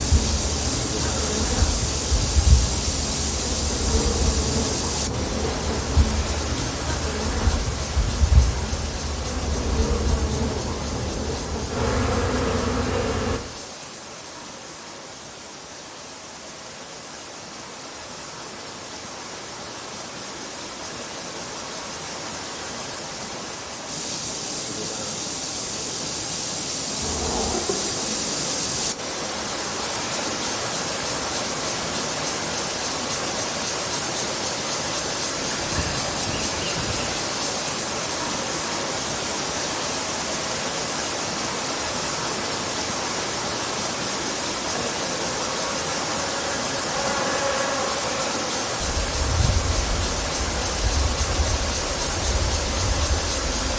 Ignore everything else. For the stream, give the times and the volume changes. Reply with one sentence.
You can hear the stream from 0.0 to 53.7 s, getting quieter then louder.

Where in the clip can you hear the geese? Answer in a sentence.
The geese can be heard from 35.4 to 37.3 s.